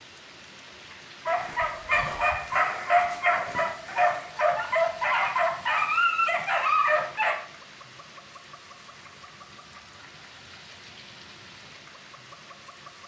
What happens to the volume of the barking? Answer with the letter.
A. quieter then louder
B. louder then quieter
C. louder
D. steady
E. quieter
D.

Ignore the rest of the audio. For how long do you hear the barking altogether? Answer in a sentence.
You can hear the barking for 6 seconds altogether.